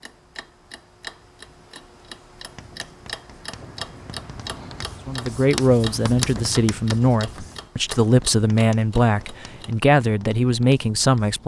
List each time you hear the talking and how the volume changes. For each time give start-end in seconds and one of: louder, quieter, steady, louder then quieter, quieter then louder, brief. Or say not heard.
5.0-11.4 steady.